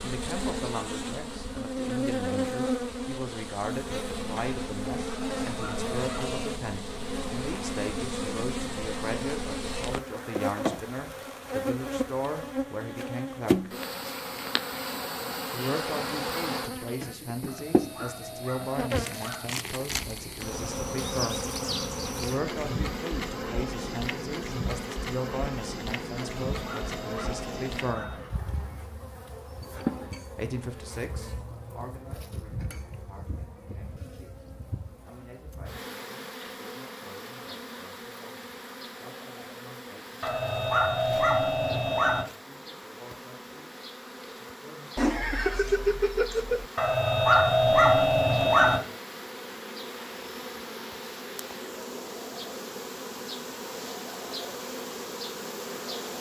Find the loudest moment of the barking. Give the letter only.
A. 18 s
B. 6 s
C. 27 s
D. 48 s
D.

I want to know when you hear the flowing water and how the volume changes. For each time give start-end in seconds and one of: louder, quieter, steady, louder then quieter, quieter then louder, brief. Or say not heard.
not heard.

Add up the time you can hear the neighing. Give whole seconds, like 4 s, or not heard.
2 s.